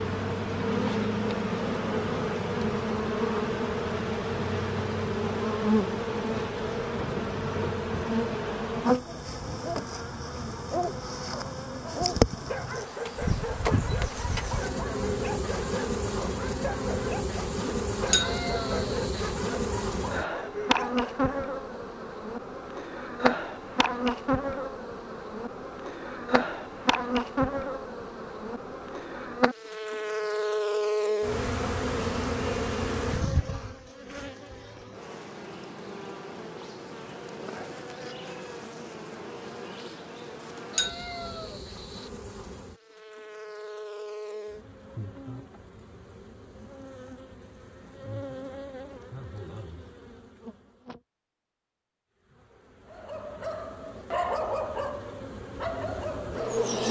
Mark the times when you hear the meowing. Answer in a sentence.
You can hear the meowing from 18.1 to 19.3 s and from 40.7 to 42.1 s.